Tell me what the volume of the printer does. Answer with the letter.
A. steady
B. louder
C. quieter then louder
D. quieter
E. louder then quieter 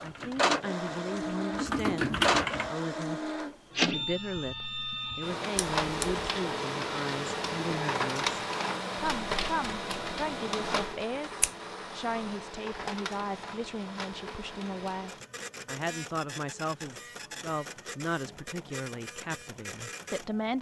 D.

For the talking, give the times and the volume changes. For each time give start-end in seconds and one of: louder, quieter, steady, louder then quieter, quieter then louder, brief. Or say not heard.
0.0-20.5 steady.